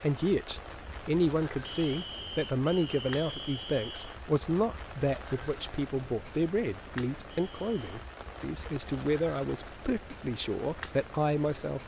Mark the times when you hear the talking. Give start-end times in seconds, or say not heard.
0.0-11.8.